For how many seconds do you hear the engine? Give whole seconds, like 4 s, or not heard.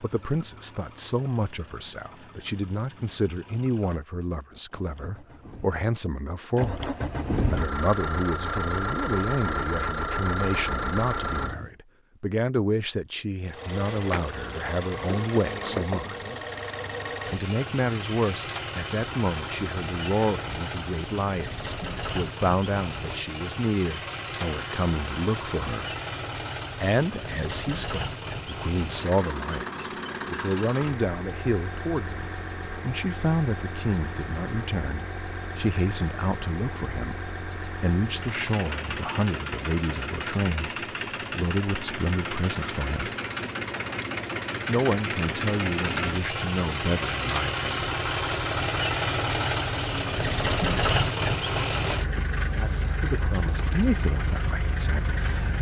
54 s.